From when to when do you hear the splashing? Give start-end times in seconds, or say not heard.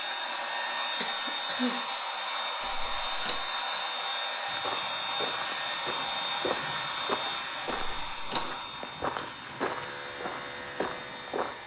not heard.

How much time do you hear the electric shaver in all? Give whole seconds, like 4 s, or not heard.
2 s.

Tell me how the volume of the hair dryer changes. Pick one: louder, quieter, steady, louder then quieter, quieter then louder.
quieter.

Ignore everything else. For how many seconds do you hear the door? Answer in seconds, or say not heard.
2 s.